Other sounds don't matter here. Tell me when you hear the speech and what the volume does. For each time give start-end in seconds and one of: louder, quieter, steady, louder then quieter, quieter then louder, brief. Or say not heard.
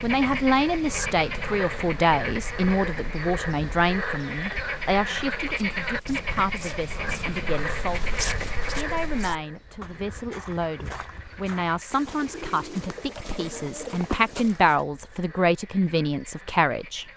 0.0-17.1 quieter then louder.